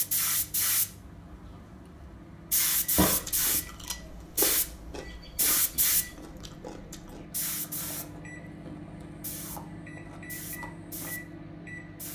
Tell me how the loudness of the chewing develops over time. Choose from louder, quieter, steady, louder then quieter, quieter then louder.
quieter.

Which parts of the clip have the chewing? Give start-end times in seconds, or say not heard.
3.0-11.1.